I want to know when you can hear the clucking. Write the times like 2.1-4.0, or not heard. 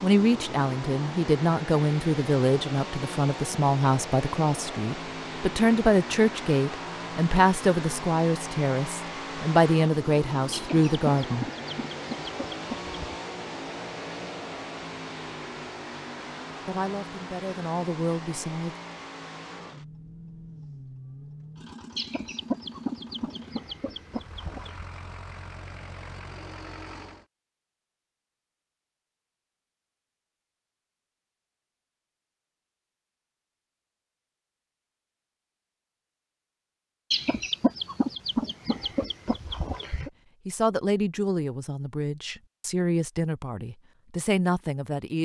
10.5-13.2, 21.9-24.9, 37.1-40.1.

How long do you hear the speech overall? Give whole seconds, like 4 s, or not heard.
19 s.